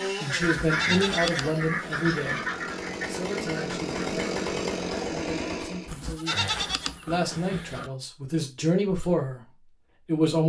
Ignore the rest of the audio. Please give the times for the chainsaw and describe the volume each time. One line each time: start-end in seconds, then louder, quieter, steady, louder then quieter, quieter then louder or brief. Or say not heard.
0.0-5.9 louder.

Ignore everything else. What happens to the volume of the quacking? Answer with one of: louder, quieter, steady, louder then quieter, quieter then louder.
quieter.